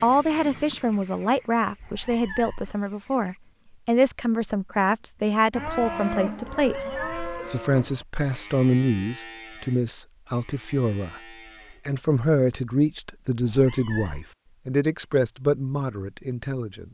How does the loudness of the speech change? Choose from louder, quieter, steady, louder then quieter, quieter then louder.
steady.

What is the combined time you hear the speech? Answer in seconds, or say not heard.
16 s.